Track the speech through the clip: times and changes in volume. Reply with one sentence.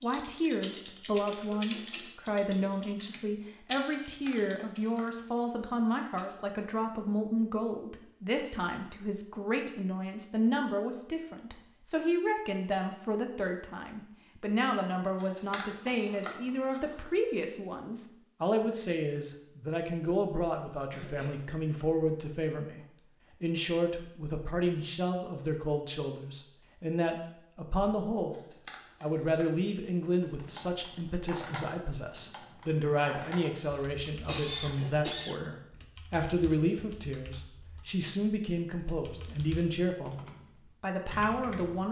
The speech can be heard from 0.0 to 41.8 s, at a steady volume.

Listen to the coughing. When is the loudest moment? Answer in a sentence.
The volume of the coughing peaks at 34 seconds.